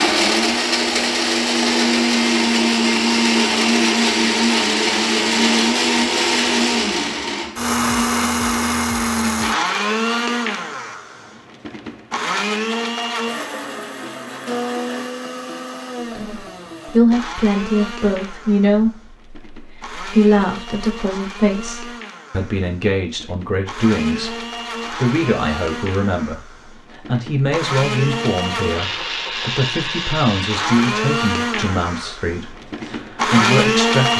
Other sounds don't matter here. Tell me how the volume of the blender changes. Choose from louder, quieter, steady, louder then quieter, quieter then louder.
quieter then louder.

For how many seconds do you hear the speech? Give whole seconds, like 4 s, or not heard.
18 s.